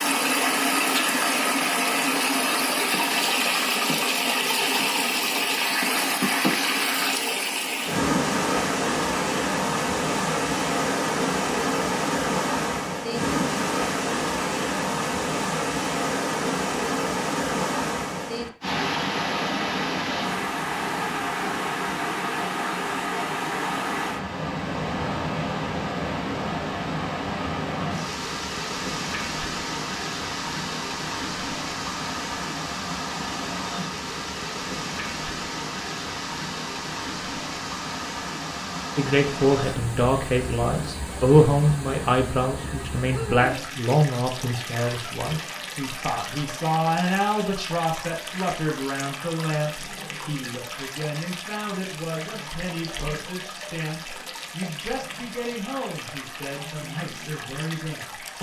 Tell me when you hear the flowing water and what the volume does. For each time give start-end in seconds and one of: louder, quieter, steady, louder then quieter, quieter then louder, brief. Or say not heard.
0.0-58.3 quieter.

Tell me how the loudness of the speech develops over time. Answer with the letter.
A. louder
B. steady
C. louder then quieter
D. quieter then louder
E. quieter
E.